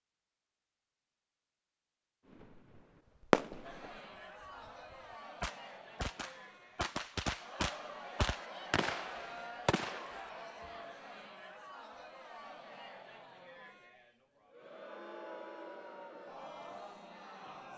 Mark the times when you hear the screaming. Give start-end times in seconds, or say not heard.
not heard.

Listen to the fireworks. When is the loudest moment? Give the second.
3 s.